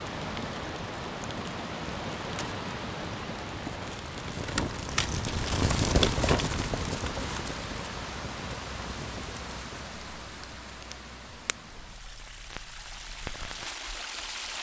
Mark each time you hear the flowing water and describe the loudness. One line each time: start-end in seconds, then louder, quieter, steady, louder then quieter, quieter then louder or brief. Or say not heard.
0.0-14.5 quieter.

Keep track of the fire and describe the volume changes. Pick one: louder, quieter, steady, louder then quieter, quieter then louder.
louder then quieter.